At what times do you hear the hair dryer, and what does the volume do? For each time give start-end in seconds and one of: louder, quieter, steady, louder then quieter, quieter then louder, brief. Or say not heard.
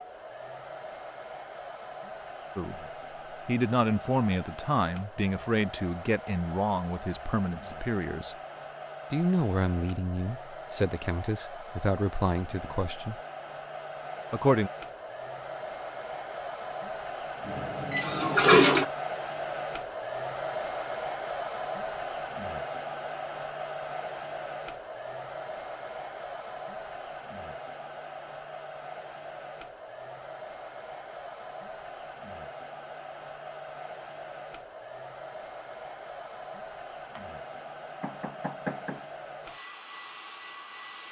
0.0-41.0 louder then quieter.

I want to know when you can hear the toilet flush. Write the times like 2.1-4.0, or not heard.
17.4-18.9.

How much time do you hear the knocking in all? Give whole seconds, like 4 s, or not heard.
2 s.